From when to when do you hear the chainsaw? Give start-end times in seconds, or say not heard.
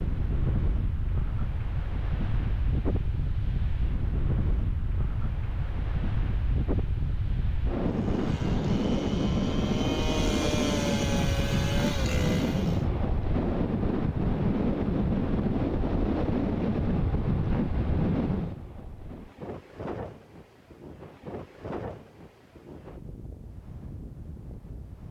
7.8-12.8.